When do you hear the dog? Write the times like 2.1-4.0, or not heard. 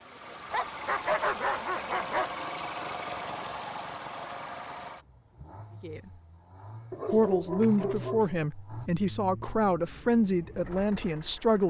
0.5-2.4, 6.9-8.4.